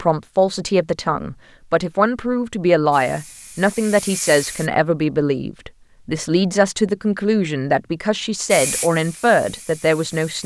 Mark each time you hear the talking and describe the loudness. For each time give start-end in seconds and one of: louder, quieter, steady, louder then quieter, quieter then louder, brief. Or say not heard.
0.0-10.4 steady.